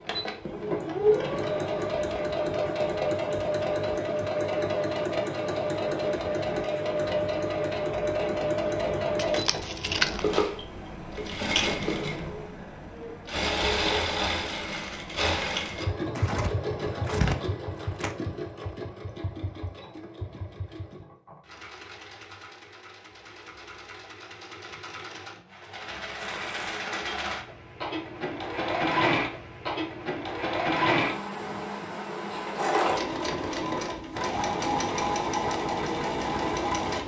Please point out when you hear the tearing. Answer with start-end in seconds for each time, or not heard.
9.2-10.2, 16.1-18.1, 26.1-26.9.